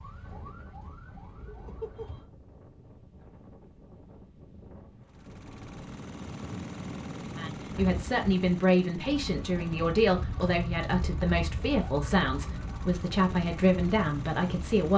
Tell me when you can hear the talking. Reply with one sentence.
You can hear the talking from 7.3 to 14.9 s.